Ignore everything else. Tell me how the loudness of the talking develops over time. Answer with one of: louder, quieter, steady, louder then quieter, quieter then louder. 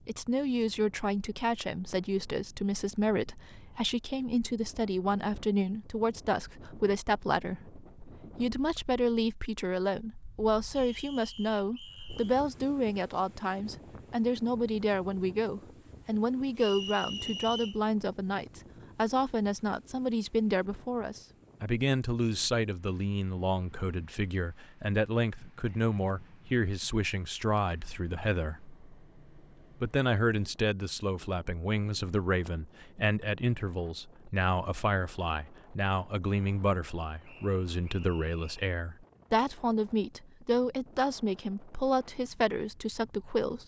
steady.